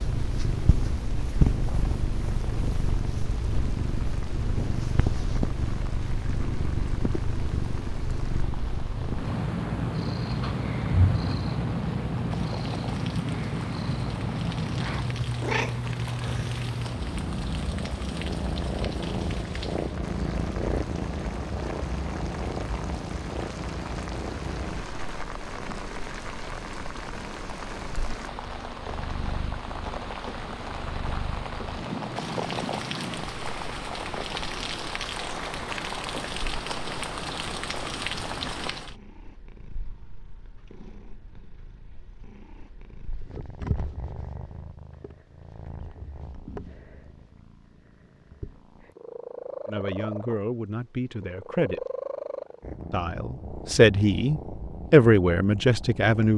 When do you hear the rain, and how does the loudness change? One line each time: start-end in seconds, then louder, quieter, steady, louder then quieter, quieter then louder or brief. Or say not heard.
0.0-39.0 louder.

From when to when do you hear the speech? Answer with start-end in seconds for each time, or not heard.
49.6-51.8, 52.9-56.3.